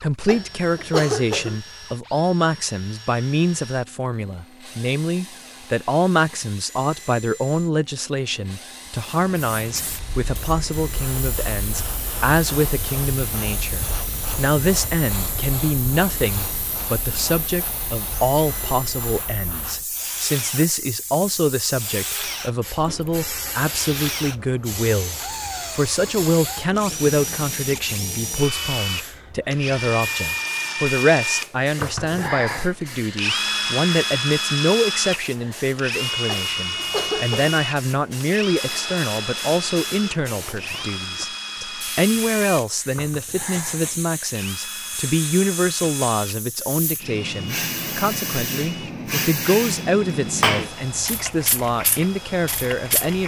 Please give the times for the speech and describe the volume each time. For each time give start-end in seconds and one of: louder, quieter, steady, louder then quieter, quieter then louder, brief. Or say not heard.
0.0-53.2 steady.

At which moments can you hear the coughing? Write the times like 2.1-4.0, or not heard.
0.2-1.6, 36.2-37.5.